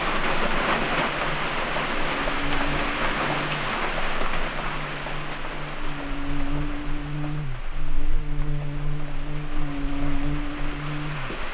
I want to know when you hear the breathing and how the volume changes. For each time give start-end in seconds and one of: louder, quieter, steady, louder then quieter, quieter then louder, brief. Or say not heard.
not heard.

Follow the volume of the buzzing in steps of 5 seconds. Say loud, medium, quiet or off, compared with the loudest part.
medium, loud, loud.